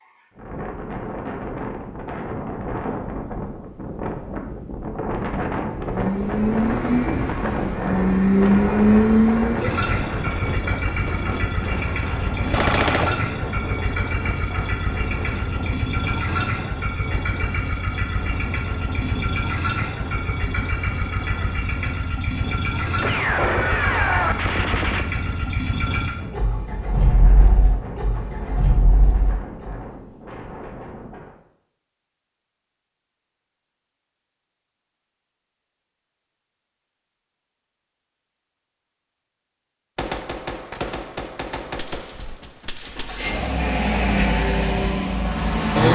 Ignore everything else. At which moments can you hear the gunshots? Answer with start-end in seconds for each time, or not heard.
12.5-13.2, 23.0-25.1, 40.0-43.2.